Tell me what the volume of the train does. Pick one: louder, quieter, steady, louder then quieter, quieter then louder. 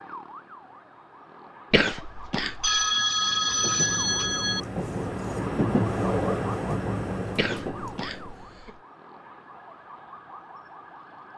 louder then quieter.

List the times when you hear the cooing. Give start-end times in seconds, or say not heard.
not heard.